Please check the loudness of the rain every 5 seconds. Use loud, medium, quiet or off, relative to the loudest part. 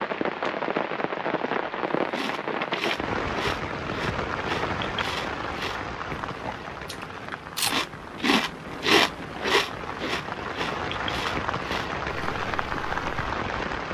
loud, medium, loud.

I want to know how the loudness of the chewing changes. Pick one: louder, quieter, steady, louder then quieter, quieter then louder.
louder then quieter.